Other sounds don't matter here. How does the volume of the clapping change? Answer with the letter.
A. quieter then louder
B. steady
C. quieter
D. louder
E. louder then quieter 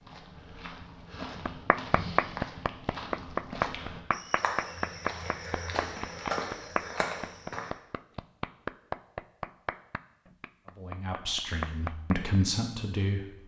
C.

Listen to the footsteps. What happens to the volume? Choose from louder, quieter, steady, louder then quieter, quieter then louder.
louder.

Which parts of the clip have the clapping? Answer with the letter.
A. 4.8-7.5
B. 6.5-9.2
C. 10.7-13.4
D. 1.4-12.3
D.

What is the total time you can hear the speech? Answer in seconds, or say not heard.
3 s.